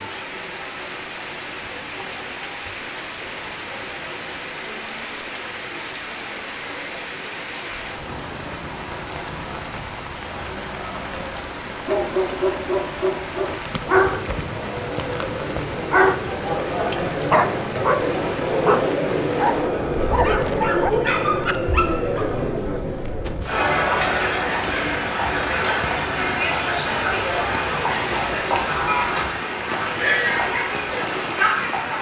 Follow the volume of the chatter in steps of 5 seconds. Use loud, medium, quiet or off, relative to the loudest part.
quiet, quiet, quiet, loud, loud, loud, loud.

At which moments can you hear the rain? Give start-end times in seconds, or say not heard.
0.0-31.9.